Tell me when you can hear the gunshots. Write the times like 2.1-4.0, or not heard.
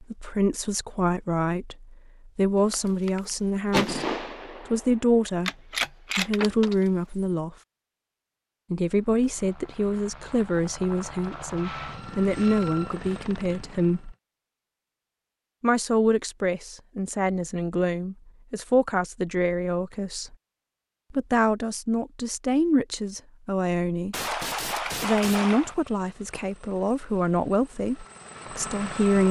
2.5-6.8, 24.1-25.8.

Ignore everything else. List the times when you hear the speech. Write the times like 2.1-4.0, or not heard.
0.0-5.5, 6.2-7.5, 8.7-14.2, 15.6-20.4, 21.1-29.2.